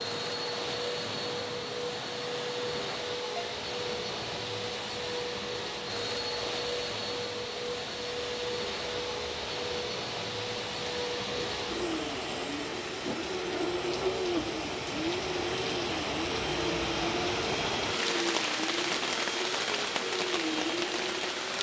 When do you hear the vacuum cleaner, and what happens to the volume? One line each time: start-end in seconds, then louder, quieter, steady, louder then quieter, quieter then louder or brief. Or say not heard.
0.0-21.5 steady.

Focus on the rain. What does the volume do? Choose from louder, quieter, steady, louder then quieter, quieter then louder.
louder.